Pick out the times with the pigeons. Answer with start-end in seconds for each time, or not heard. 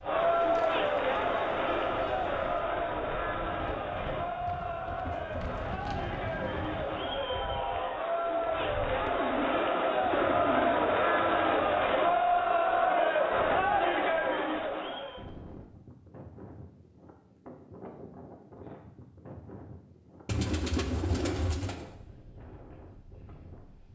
0.1-2.6, 9.1-10.8, 20.2-21.9.